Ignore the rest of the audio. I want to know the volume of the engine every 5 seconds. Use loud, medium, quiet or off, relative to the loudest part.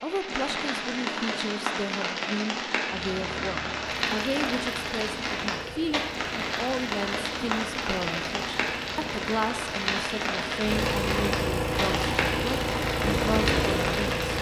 quiet, quiet, loud.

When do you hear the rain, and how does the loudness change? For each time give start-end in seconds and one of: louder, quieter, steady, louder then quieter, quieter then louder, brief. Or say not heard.
0.0-14.3 steady.